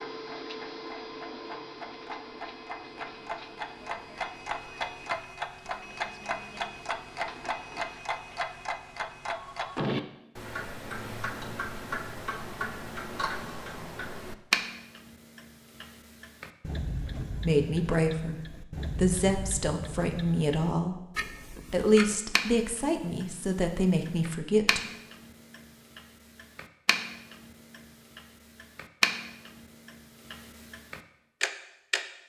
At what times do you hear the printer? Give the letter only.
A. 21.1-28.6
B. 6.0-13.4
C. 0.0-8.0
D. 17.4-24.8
C.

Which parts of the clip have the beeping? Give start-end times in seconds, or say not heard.
not heard.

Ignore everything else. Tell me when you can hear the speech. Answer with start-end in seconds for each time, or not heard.
17.4-24.8.